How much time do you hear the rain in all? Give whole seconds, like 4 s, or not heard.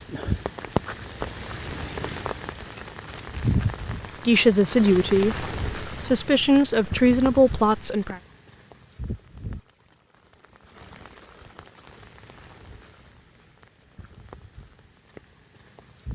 16 s.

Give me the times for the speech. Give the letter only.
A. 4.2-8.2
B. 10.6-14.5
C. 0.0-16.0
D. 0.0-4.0
A.